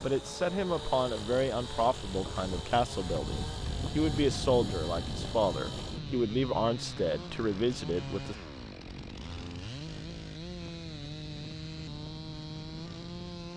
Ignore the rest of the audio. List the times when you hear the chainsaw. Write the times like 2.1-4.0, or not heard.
0.0-13.5.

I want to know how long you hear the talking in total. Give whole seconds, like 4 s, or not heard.
8 s.